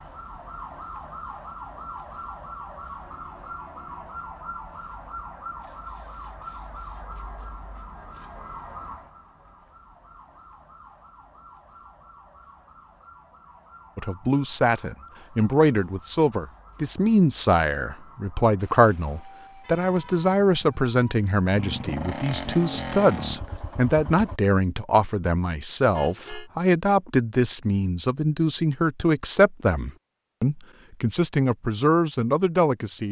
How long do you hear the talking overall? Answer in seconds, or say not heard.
19 s.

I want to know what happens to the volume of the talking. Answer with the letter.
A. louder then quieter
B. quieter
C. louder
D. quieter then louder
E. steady
E.